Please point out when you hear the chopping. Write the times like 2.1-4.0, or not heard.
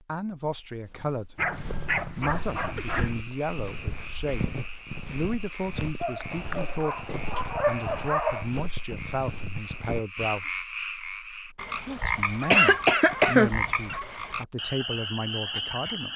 not heard.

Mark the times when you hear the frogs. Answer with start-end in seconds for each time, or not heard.
2.5-16.1.